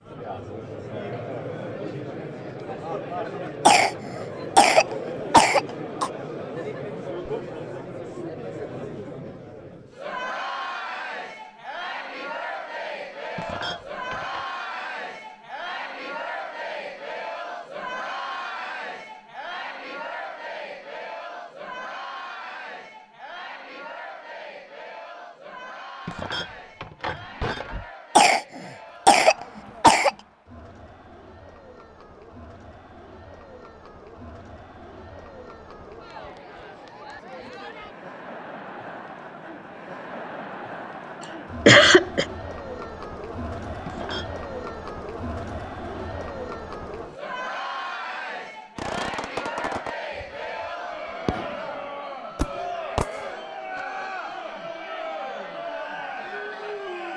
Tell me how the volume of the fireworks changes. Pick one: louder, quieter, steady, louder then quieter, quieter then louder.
quieter then louder.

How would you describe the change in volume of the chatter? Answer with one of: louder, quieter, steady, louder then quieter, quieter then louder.
quieter then louder.